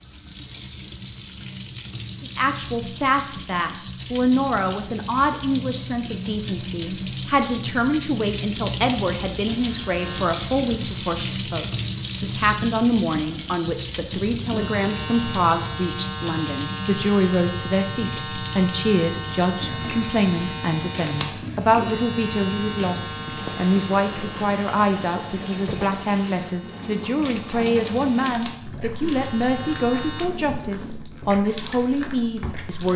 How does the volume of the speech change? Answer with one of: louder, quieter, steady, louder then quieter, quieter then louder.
steady.